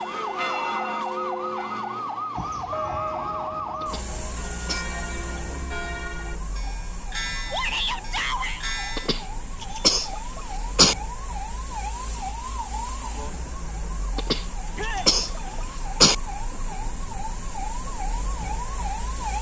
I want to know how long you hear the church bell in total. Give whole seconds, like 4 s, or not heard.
9 s.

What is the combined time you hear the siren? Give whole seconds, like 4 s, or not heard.
19 s.